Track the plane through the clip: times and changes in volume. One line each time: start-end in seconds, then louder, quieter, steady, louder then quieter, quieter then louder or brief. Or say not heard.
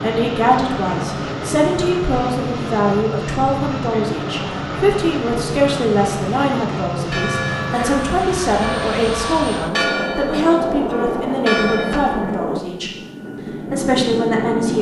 0.0-14.7 steady.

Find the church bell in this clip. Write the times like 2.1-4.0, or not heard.
7.1-12.4.